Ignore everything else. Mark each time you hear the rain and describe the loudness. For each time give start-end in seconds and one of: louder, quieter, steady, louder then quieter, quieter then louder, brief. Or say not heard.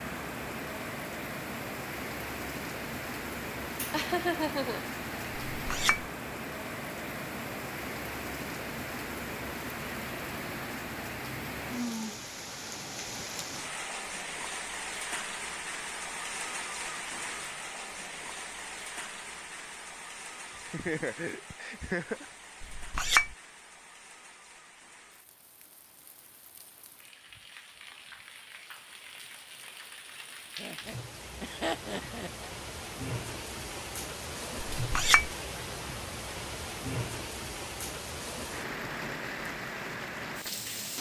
0.0-40.9 quieter then louder.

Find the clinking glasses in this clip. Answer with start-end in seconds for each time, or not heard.
5.5-6.0, 22.6-23.4, 34.8-35.3.